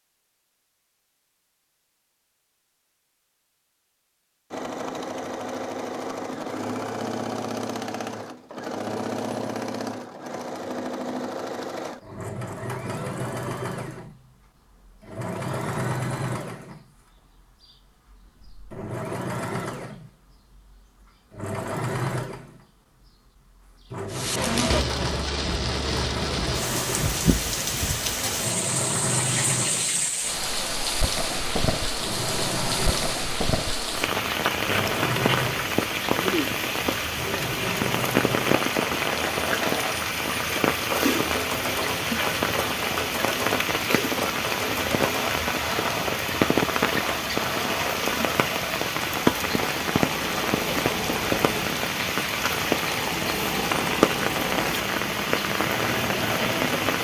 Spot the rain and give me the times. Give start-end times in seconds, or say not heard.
24.1-56.9.